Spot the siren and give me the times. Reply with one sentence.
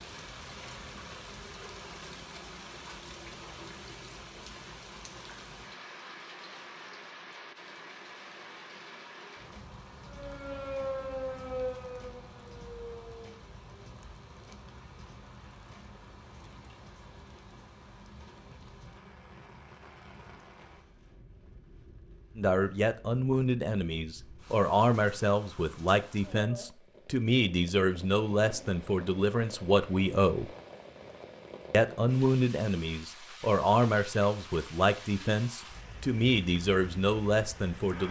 The siren can be heard from 10.1 to 13.4 s.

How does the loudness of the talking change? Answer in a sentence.
The volume of the talking stays about the same.